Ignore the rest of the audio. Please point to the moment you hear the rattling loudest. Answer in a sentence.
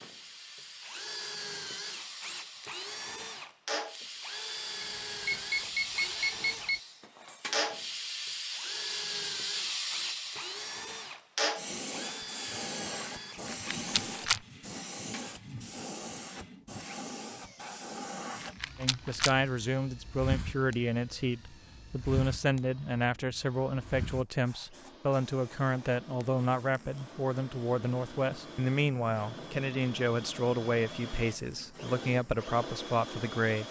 The volume of the rattling peaks at 14 seconds.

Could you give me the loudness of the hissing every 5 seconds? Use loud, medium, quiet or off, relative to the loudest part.
medium, loud, loud, medium, medium, quiet, quiet.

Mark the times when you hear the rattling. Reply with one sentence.
You can hear the rattling from 13.4 to 14.4 s and from 18.4 to 19.4 s.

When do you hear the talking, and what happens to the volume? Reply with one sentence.
You can hear the talking from 18.8 to 33.6 s, at a steady volume.